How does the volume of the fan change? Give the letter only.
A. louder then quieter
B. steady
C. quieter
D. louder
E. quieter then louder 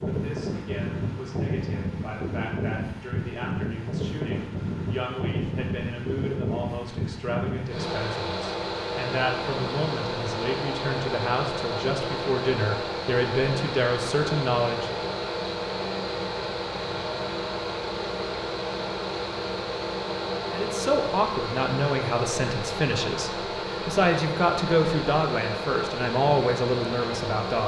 B.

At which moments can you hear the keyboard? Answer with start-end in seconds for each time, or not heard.
not heard.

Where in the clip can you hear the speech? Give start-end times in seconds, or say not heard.
0.0-14.9, 20.5-27.6.